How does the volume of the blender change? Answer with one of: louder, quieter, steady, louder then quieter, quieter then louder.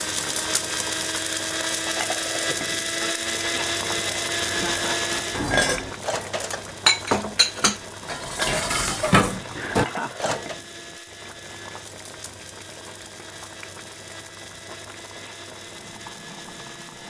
quieter.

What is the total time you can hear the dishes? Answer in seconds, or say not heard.
6 s.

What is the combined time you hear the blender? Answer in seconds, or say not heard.
17 s.